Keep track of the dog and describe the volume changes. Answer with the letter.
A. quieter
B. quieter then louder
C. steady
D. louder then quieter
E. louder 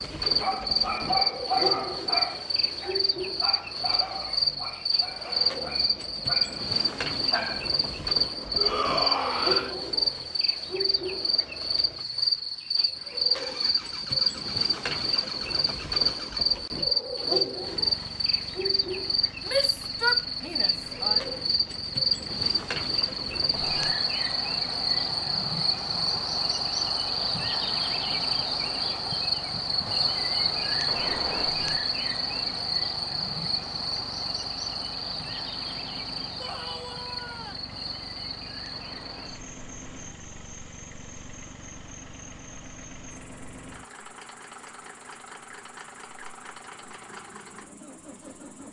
A.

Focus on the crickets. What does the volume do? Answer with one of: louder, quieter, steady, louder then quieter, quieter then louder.
quieter.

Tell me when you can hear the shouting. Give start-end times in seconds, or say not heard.
8.6-9.8, 19.4-21.2, 36.4-37.6.